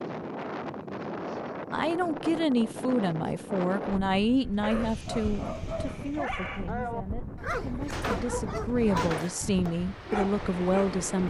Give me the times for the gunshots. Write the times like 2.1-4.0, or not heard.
7.8-9.7.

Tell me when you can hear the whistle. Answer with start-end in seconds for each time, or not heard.
not heard.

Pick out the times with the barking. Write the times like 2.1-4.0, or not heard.
4.6-10.9.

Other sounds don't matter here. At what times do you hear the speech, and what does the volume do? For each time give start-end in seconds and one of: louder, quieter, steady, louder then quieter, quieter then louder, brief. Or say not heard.
1.7-11.2 quieter then louder.